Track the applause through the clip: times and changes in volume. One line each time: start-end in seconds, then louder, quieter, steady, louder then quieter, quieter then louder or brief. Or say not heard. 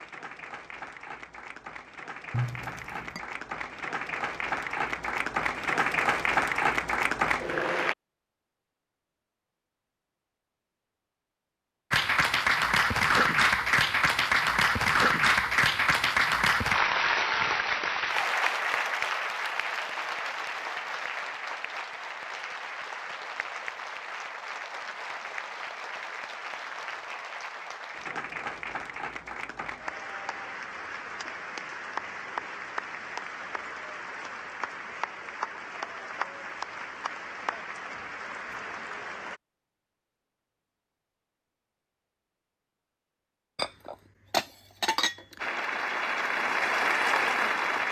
0.0-8.0 louder
11.9-39.4 quieter
45.4-47.8 brief.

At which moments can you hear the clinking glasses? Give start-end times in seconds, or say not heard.
2.3-3.2, 43.5-45.2.